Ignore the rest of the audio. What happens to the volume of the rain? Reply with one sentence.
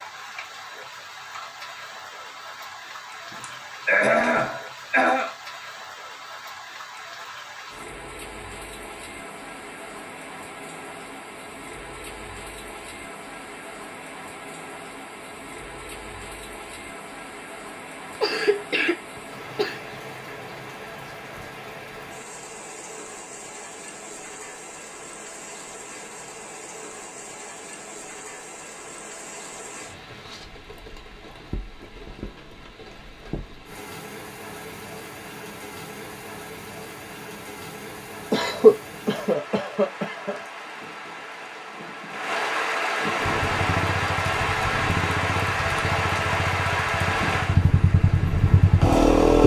The volume of the rain goes up.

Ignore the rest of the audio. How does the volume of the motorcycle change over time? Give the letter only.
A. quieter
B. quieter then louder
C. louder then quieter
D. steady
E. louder
E.